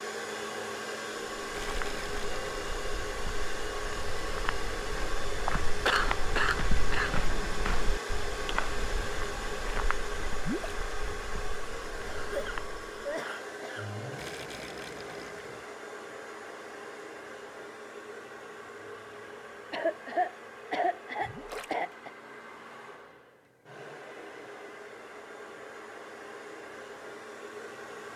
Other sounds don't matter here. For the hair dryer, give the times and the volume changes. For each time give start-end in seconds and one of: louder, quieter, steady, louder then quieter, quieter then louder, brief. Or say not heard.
0.0-28.1 quieter.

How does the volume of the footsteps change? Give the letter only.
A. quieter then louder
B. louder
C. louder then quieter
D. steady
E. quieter
C.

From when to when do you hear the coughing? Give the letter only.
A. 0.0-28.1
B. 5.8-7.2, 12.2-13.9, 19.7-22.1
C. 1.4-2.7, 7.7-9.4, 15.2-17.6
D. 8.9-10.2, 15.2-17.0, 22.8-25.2
B.